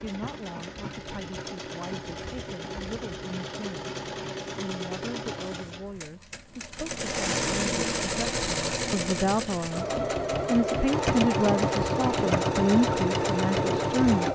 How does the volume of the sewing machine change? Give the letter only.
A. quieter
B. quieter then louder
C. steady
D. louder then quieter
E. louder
E.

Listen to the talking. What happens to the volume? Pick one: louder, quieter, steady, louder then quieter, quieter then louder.
louder.